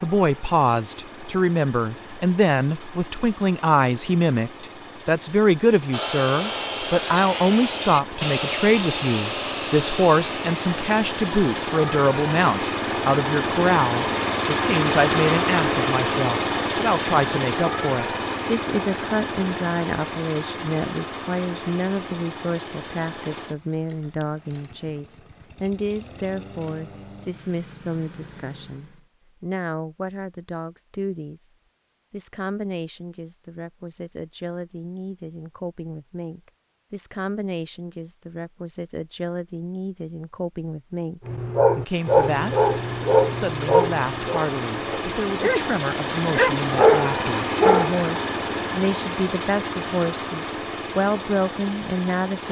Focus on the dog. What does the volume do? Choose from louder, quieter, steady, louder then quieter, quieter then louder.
quieter then louder.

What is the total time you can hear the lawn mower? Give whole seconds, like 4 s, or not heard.
40 s.